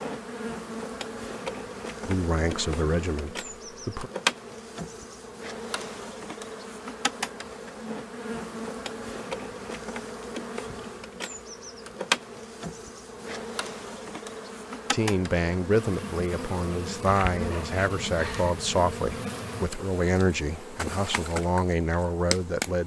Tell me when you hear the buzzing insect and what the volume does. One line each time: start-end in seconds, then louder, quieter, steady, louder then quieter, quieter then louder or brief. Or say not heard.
0.0-22.8 steady.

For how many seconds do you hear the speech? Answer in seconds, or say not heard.
10 s.